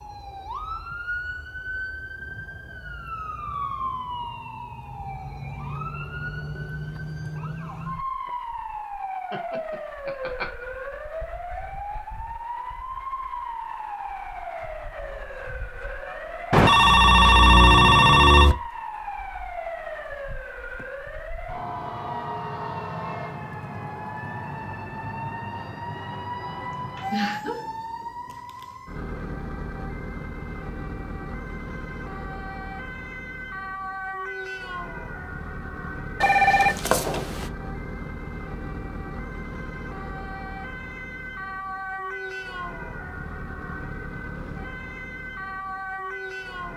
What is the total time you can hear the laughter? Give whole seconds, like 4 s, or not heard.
2 s.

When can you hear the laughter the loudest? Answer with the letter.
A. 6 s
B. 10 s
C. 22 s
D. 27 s
D.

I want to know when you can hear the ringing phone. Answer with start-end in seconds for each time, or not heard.
16.5-18.6, 36.2-37.5.